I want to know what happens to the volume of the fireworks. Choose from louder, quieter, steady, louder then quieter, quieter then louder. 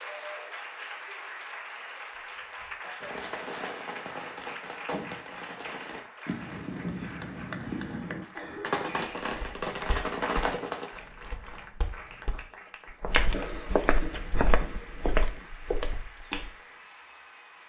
louder.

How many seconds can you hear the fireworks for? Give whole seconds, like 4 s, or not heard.
8 s.